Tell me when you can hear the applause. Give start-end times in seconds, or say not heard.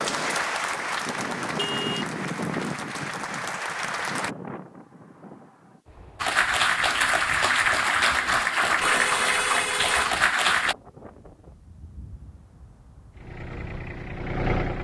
0.0-4.3, 6.2-10.8.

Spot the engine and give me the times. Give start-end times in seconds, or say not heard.
13.1-14.7.